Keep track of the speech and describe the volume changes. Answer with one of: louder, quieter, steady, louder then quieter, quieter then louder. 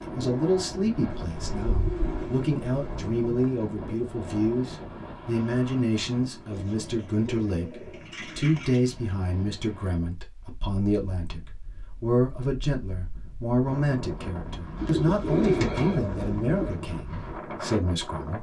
steady.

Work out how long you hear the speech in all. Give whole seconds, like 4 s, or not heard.
18 s.